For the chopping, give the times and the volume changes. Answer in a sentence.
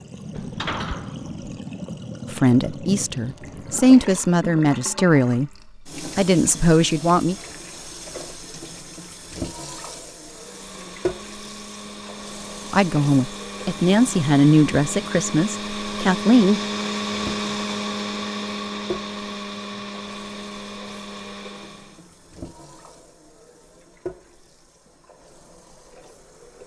The chopping can't be heard in this clip.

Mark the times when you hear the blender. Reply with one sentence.
You can hear the blender from 10.3 to 22.1 s.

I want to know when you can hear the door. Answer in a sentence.
The door can be heard from 0.3 to 1.6 s.